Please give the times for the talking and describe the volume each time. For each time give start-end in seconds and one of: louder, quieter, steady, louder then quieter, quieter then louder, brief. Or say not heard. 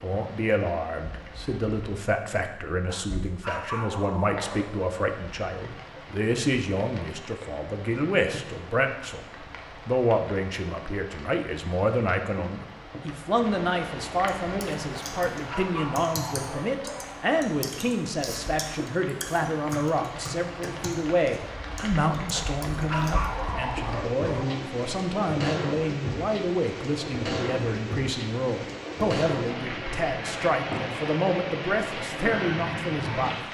0.0-33.4 steady.